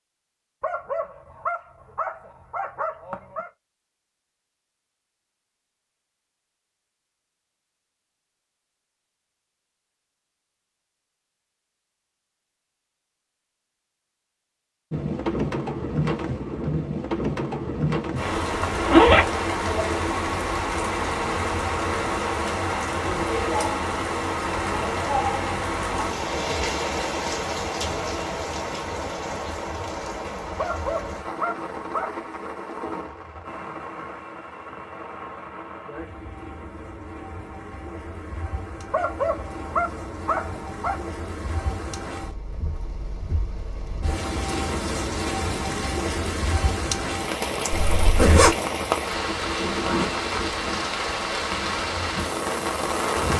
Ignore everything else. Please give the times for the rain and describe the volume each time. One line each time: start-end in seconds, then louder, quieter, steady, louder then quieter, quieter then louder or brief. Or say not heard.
14.9-53.3 quieter then louder.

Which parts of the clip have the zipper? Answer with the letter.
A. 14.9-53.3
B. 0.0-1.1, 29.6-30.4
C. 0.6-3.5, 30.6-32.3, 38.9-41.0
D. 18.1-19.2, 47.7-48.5
D.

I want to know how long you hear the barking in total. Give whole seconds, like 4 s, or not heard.
7 s.